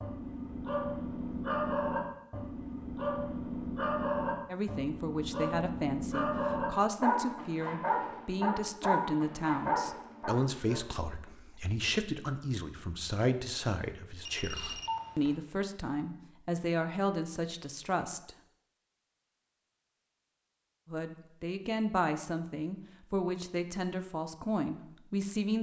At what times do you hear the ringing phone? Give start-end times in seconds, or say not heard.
14.2-15.4.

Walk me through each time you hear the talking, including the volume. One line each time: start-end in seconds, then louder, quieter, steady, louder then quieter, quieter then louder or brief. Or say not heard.
4.5-18.3 steady
20.9-25.5 steady.